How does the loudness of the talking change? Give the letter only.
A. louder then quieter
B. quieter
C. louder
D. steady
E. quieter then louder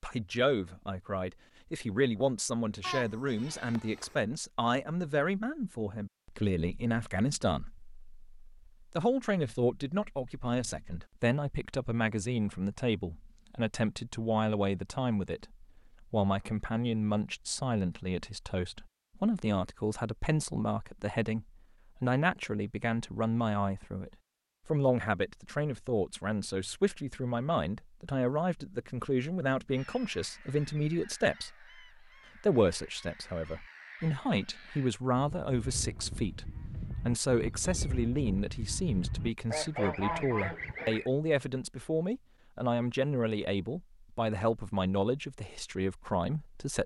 D.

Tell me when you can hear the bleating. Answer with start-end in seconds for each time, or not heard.
2.8-4.2.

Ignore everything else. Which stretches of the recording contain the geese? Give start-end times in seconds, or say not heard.
29.7-41.1.